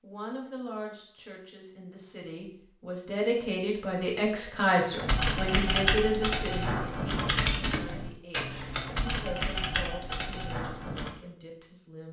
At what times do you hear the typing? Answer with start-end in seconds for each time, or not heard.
4.9-11.2.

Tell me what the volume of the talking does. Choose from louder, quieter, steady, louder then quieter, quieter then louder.
louder then quieter.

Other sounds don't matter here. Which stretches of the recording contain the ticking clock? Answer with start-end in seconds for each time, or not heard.
not heard.